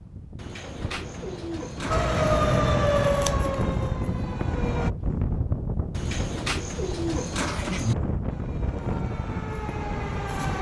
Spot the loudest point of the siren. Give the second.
3 s.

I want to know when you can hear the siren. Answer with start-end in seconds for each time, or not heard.
1.9-4.9, 8.2-10.5.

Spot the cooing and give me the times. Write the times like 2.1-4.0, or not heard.
0.3-2.4, 5.9-8.0.